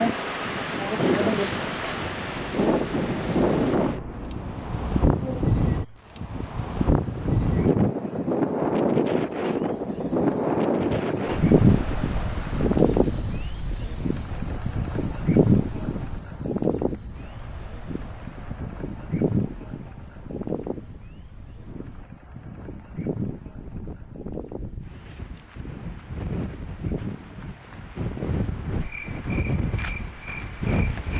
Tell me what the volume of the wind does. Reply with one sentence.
The volume of the wind goes down, then up.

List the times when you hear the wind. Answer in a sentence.
You can hear the wind from 0.0 to 31.1 s.